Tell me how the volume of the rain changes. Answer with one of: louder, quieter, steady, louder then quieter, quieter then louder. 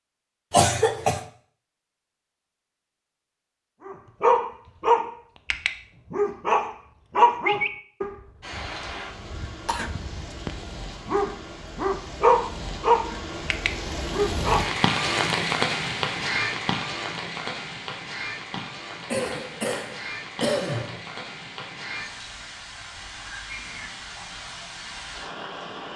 louder then quieter.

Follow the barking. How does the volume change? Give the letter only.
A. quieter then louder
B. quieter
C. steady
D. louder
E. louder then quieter
A.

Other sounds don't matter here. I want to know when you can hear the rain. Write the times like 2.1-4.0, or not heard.
8.4-25.9.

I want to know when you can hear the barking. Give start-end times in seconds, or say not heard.
3.9-8.7, 9.3-14.7.